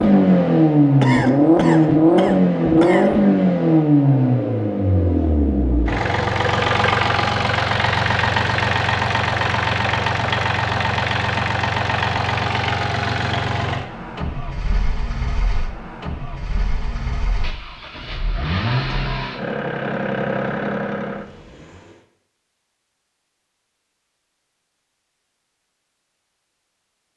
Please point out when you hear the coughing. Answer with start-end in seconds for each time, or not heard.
1.0-3.1.